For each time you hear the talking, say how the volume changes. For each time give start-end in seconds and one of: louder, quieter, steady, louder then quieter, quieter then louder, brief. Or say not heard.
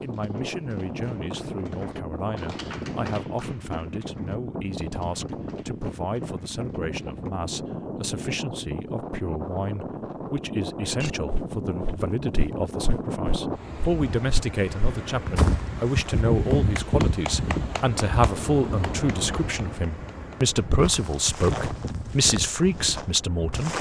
0.0-23.7 louder.